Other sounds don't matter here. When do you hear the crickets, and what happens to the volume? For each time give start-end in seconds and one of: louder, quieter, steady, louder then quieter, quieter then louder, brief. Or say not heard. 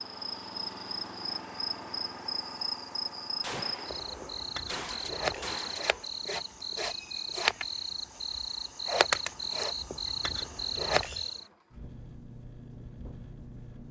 0.0-11.4 louder.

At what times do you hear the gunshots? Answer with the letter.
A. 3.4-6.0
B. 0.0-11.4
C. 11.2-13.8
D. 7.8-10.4
A.